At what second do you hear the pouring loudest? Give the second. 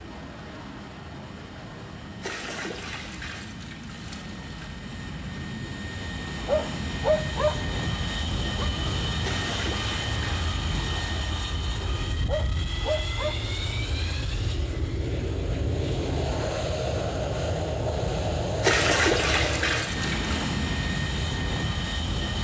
19 s.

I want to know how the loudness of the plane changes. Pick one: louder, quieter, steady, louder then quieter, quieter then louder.
louder.